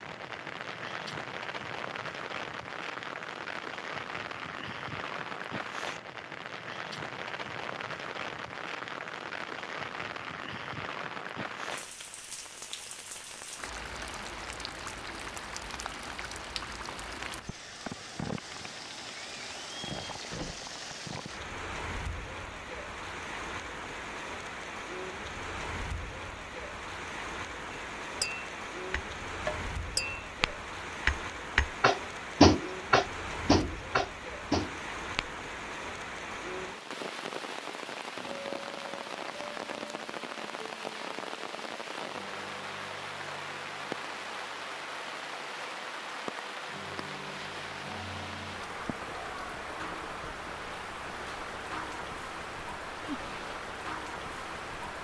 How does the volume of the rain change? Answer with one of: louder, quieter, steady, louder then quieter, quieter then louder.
steady.